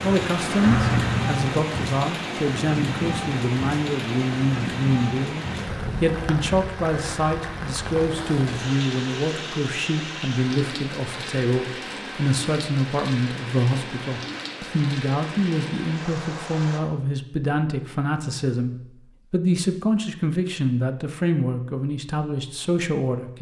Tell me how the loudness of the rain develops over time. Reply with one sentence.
The volume of the rain goes down.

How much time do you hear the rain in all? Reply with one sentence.
The rain can be heard for 17 seconds in total.